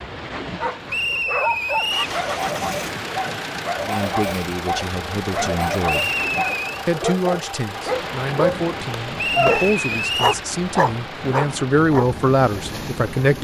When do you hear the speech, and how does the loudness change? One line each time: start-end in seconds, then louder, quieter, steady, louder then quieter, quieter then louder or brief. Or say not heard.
3.8-6.1 brief
6.8-13.4 louder.